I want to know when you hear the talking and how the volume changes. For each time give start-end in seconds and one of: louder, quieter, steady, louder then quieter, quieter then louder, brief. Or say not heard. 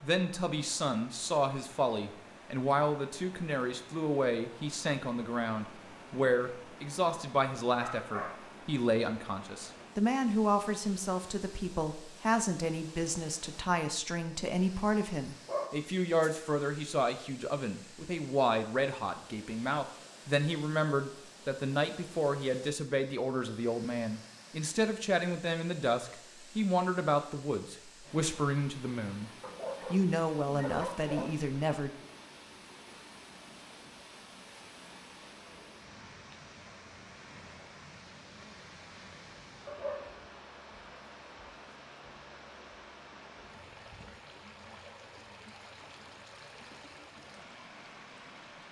0.0-29.3 steady
29.9-31.9 brief.